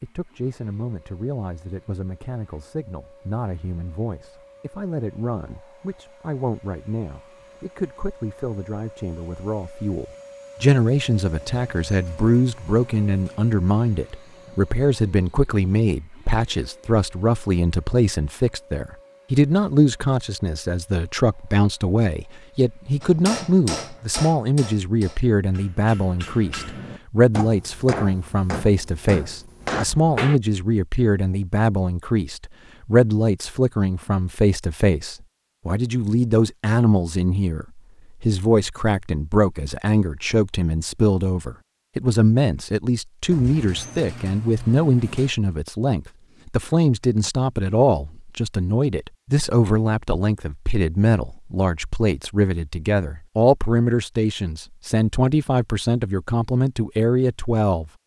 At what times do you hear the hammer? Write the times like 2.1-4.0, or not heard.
23.0-30.4.